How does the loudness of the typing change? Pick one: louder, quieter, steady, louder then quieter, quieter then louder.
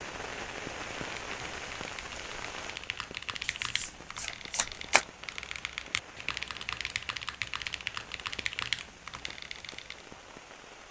louder.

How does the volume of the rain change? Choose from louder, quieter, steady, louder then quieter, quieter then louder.
quieter.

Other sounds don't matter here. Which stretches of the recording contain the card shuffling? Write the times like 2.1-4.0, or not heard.
3.4-5.0.